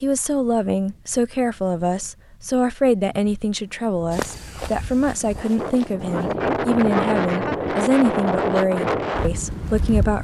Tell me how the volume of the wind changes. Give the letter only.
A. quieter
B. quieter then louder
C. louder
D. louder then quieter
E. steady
C.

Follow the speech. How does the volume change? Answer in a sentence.
The loudness of the speech stays about the same.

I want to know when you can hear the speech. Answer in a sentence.
You can hear the speech from 0.0 to 10.1 s.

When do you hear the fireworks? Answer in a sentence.
The fireworks can't be heard in this clip.